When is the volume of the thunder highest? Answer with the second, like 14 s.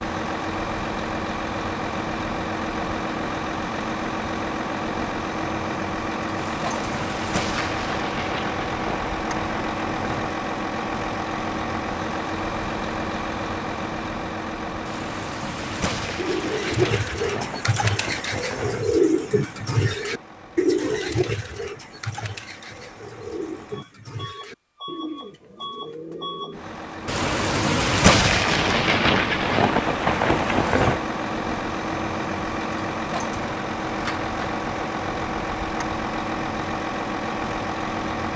28 s.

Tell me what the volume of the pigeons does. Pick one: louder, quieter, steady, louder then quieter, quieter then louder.
quieter.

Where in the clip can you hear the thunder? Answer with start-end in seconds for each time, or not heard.
6.3-10.3, 14.8-18.9, 27.1-31.0.